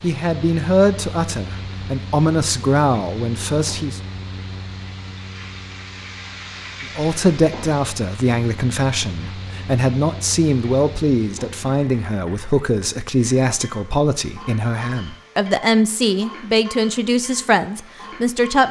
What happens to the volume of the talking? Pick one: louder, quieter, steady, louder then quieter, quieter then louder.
steady.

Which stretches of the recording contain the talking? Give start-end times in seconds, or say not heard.
0.0-4.0, 7.0-18.6.